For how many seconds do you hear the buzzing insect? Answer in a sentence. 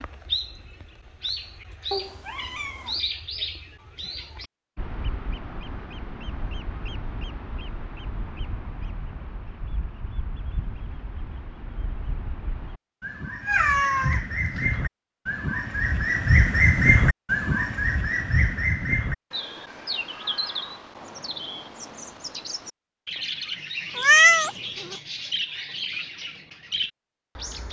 You can't hear the buzzing insect here.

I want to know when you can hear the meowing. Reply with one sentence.
You can hear the meowing from 1.9 to 3.0 s, from 13.4 to 14.8 s and from 23.9 to 24.9 s.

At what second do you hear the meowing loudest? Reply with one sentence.
The loudest moment of the meowing is at 24 seconds.